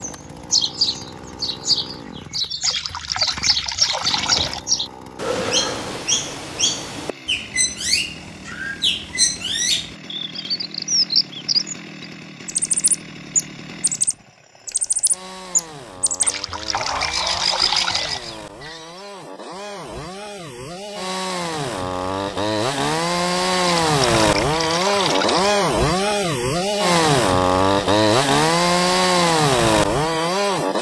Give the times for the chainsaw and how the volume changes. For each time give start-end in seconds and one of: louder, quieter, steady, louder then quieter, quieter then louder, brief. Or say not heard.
0.0-30.7 louder.